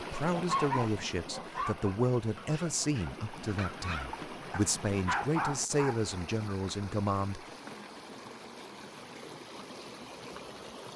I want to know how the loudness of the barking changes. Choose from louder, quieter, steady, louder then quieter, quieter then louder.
quieter then louder.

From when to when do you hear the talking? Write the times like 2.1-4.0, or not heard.
0.0-7.5.